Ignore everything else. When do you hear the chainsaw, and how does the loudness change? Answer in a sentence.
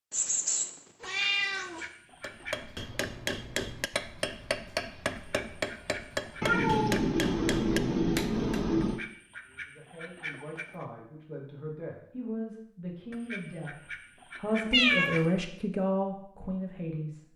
You can't hear the chainsaw here.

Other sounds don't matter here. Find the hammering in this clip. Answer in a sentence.
The hammering can be heard from 2.2 to 8.7 s.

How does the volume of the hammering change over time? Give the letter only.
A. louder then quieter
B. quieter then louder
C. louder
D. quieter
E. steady
E.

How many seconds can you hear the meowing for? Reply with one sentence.
The meowing can be heard for 5 seconds in total.